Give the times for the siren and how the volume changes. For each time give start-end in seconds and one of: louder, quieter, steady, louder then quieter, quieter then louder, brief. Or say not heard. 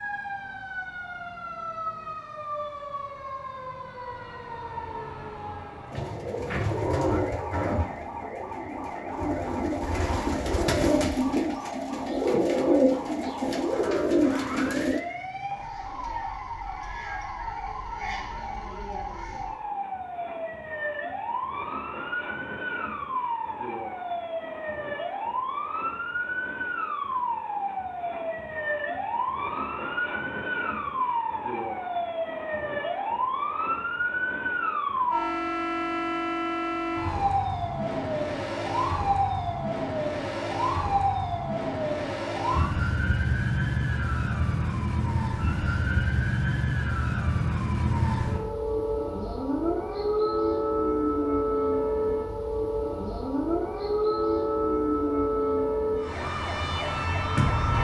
0.0-57.7 louder.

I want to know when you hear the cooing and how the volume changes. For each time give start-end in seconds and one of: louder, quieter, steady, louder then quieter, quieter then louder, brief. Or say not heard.
5.9-15.0 quieter then louder.